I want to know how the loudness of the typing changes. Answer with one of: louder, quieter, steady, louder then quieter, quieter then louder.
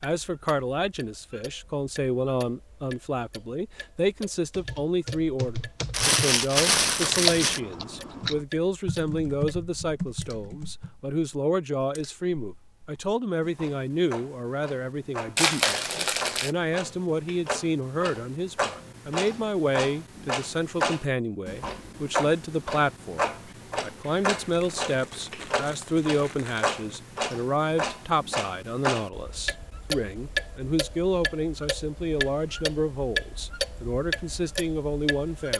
louder then quieter.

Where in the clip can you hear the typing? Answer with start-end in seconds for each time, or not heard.
4.5-10.9.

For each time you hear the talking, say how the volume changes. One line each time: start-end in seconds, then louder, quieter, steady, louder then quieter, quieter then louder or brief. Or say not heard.
0.0-35.5 steady.